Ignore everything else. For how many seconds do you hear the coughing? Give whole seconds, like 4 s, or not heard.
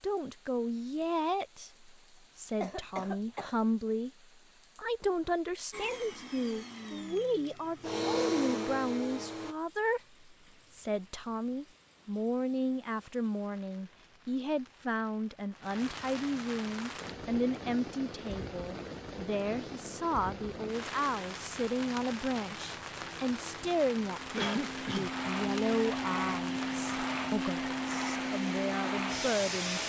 2 s.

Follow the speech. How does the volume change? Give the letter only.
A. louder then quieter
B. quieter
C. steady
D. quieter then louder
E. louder
C.